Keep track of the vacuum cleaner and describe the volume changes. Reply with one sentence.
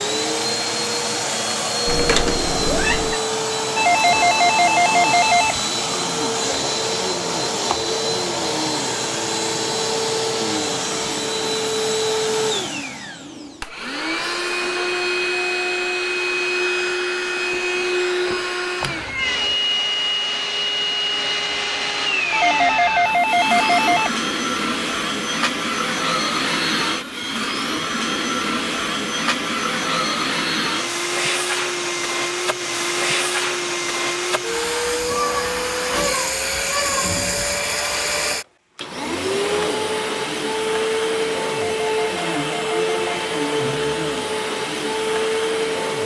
The loudness of the vacuum cleaner stays about the same.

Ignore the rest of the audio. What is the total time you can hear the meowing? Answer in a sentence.
You can hear the meowing for 4 seconds altogether.